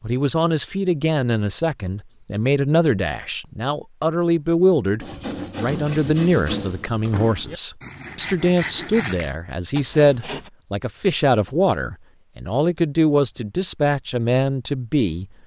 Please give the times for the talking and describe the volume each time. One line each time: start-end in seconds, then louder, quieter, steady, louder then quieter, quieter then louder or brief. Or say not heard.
0.0-15.2 steady.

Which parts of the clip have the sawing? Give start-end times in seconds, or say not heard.
5.0-10.5.